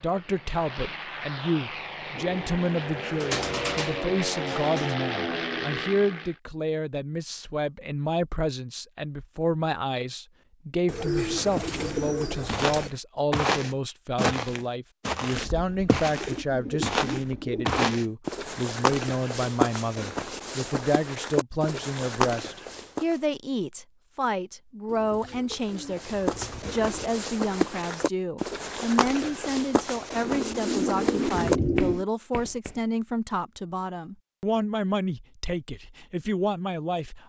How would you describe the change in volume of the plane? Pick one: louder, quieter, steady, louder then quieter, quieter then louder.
louder.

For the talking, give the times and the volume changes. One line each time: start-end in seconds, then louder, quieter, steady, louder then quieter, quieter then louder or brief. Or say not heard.
0.0-37.2 steady.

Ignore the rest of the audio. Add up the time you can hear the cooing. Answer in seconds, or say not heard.
12 s.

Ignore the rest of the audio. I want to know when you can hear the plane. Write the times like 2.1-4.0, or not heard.
0.0-6.4.